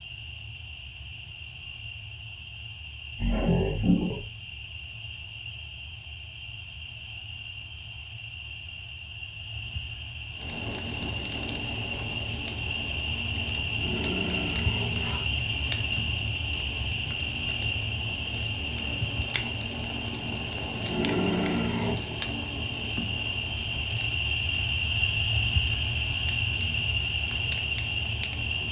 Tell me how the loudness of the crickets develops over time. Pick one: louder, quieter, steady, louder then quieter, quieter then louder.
louder.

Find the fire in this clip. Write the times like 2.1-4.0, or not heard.
10.3-28.6.